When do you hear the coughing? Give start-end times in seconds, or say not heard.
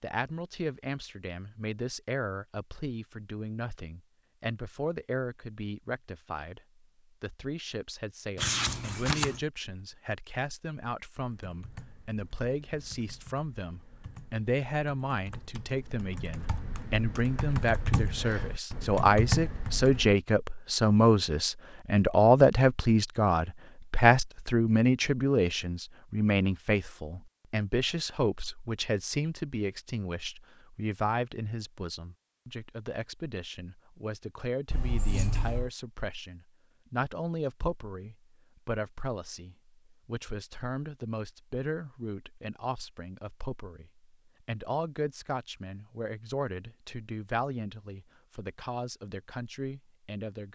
not heard.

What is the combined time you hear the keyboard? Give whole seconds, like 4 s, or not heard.
9 s.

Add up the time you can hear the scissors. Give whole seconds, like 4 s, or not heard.
2 s.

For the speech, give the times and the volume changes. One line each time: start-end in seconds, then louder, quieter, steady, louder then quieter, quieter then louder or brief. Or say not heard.
0.0-50.5 louder then quieter.